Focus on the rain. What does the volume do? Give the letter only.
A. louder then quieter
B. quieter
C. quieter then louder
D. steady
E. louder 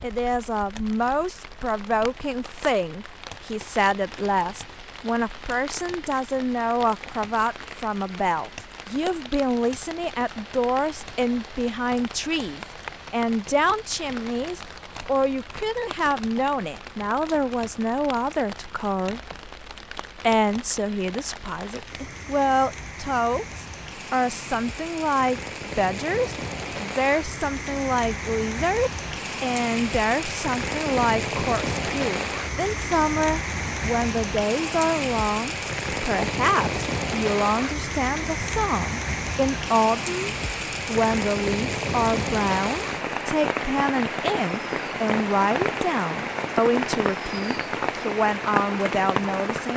E.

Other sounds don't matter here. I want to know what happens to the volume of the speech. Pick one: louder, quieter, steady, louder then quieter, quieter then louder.
steady.